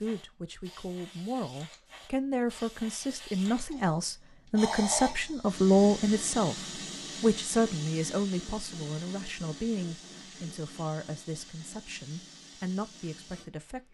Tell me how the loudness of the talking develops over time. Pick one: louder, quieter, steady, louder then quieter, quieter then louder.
louder then quieter.